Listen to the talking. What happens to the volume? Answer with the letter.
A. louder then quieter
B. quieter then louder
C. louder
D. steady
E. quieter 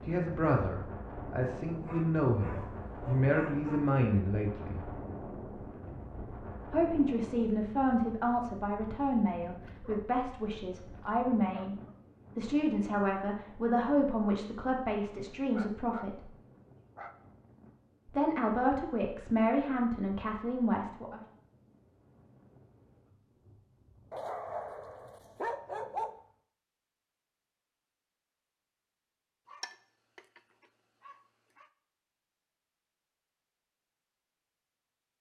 D.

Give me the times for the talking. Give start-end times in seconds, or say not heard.
0.1-4.8, 6.7-11.8, 12.3-16.3, 18.1-21.2.